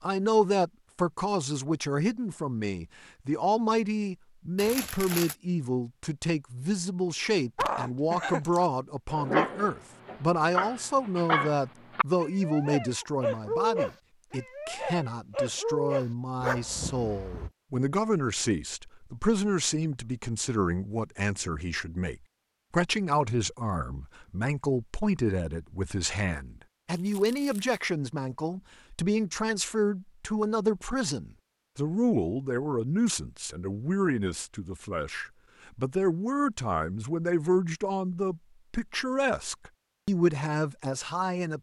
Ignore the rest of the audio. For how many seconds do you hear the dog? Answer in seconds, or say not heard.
10 s.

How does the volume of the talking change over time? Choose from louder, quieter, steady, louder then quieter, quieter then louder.
steady.